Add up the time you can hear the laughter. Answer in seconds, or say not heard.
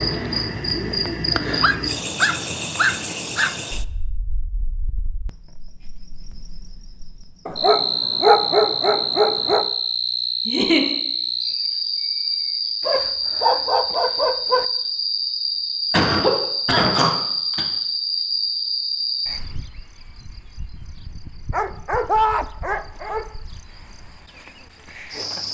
2 s.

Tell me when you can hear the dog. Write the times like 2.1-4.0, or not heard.
1.6-3.5, 7.5-9.7, 12.8-14.7, 21.5-23.3.